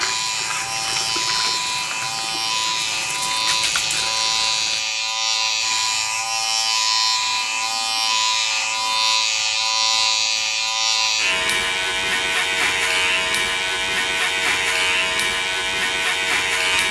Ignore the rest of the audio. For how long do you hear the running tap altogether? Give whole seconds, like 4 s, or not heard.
5 s.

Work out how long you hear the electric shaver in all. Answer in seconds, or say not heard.
17 s.